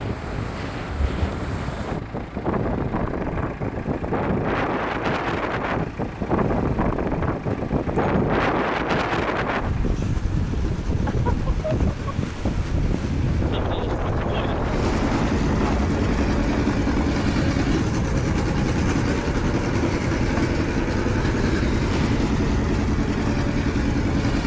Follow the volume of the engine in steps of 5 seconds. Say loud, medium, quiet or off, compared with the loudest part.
quiet, quiet, medium, loud, loud.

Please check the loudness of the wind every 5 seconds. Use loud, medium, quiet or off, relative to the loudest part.
loud, loud, loud, loud, medium.